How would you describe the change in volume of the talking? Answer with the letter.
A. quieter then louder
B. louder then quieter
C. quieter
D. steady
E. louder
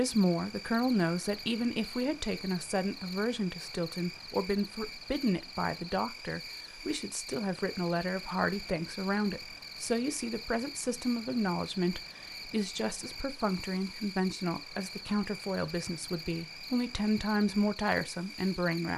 D.